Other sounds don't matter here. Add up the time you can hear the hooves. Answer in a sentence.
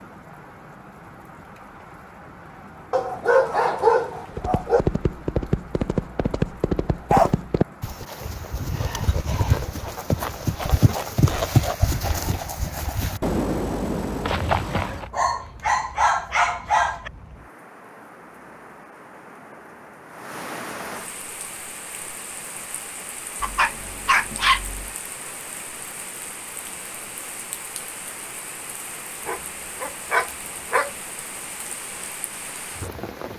You can hear the hooves for 11 seconds altogether.